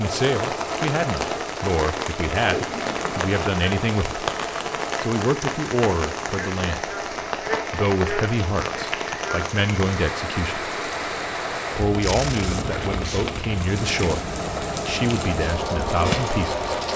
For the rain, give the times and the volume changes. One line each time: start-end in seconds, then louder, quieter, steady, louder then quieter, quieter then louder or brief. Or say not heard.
0.0-16.9 steady.